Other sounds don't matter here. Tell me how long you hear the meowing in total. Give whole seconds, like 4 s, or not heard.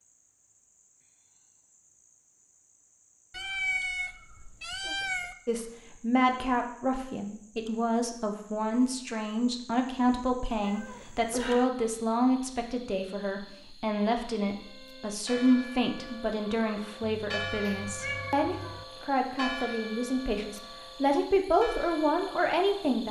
5 s.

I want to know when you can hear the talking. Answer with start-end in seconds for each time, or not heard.
5.5-23.0.